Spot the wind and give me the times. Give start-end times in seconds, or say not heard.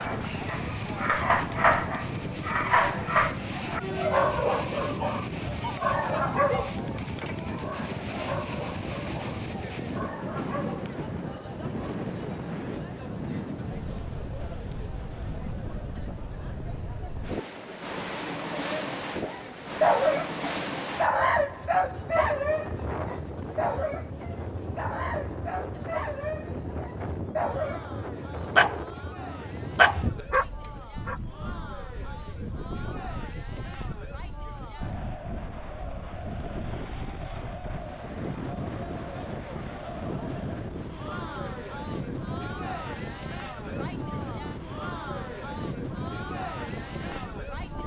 0.0-47.8.